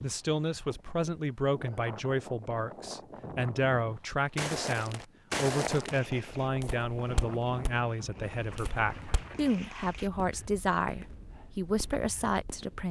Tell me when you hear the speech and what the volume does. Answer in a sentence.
You can hear the speech from 0.0 to 12.8 s, at a steady volume.